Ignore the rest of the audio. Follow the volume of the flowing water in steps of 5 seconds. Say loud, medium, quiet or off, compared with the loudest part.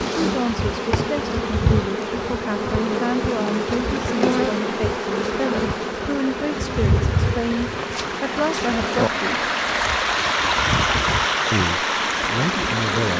quiet, medium, loud.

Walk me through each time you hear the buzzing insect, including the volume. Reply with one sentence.
You can hear the buzzing insect from 0.0 to 13.1 s, getting quieter.